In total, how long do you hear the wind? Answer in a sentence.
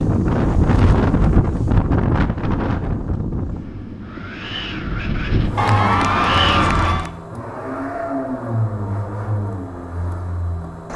You can hear the wind for 7 seconds altogether.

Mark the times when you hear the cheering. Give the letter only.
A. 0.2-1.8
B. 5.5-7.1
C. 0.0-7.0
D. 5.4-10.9
B.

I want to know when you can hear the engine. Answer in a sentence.
The engine can be heard from 5.4 to 10.9 s.